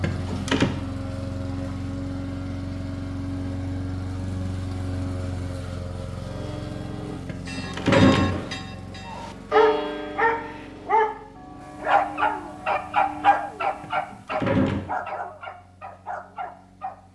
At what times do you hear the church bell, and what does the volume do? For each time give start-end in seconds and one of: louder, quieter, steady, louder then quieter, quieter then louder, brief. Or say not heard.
6.2-14.1 louder then quieter.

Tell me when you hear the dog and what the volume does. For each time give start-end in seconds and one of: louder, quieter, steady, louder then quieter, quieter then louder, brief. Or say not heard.
9.1-17.0 quieter.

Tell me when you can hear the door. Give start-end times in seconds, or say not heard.
0.0-0.7, 7.2-8.4, 13.8-14.8.